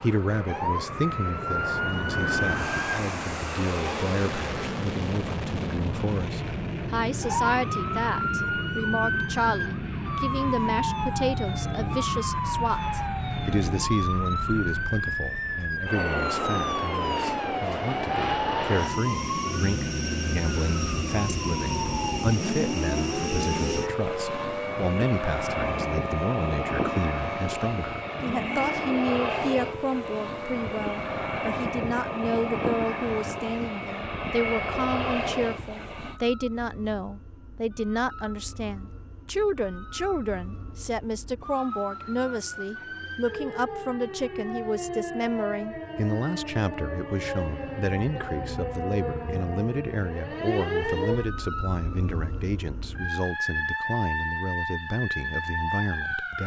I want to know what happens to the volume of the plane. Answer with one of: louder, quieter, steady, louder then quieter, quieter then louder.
steady.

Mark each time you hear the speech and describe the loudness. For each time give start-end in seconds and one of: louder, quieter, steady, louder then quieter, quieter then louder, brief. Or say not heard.
0.0-56.4 steady.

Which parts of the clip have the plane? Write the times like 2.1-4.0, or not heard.
0.0-36.2.